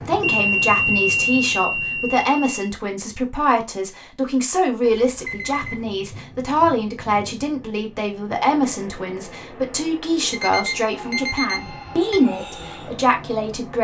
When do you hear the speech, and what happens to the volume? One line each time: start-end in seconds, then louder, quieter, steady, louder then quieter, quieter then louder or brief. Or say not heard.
0.1-13.8 steady.